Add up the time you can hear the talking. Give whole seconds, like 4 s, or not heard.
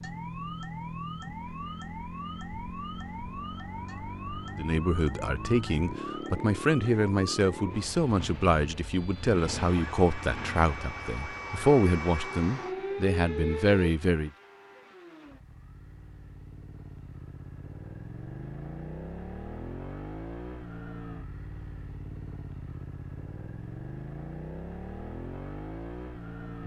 10 s.